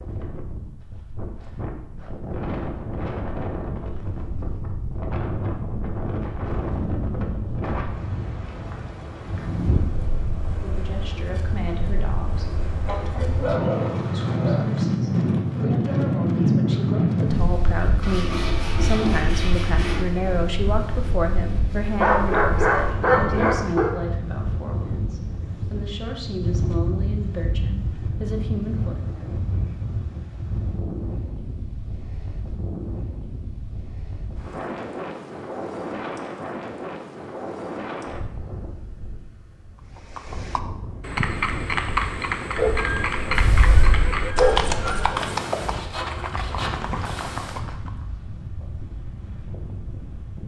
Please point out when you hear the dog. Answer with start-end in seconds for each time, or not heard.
12.8-14.7, 21.9-23.9, 42.5-45.2.